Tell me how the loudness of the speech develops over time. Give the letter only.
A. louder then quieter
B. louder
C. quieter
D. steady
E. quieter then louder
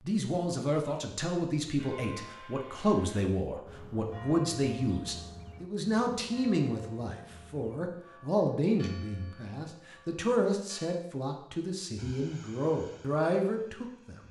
D.